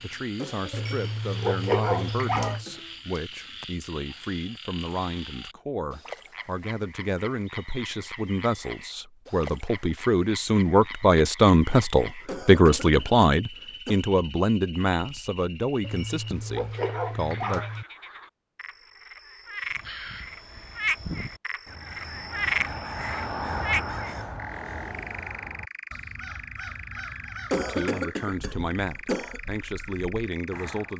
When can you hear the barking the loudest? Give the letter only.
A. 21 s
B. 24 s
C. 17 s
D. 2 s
D.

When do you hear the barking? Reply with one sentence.
The barking can be heard from 0.7 to 2.6 s and from 15.8 to 17.9 s.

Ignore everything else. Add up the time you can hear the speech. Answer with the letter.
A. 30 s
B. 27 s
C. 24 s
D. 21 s
D.